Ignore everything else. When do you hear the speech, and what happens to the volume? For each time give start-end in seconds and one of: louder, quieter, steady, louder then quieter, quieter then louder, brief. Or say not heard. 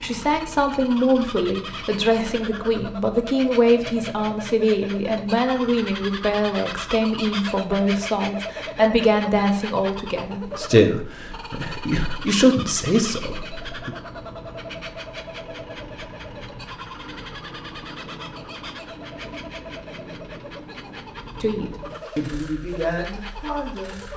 0.0-13.9 steady
21.4-24.0 brief.